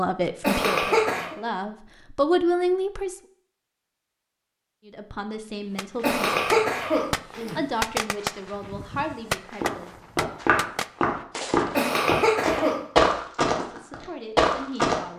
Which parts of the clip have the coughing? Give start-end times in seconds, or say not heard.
0.4-1.4, 6.0-7.6, 11.8-12.8.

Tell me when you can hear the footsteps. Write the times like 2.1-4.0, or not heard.
9.6-15.0.